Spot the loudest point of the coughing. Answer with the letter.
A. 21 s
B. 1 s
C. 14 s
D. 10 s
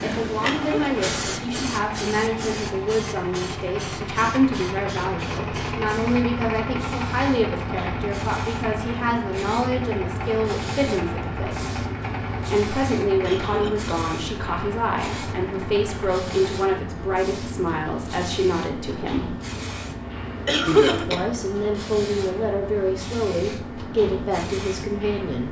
A.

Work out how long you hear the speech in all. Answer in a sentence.
The speech can be heard for 23 seconds in total.